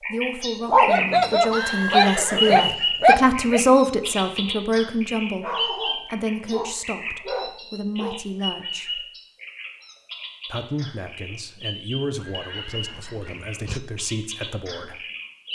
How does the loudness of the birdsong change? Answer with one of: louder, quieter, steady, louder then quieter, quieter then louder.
quieter.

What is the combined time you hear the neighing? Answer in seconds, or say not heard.
3 s.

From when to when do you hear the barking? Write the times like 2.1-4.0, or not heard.
0.7-3.6, 5.4-8.2, 12.2-13.8.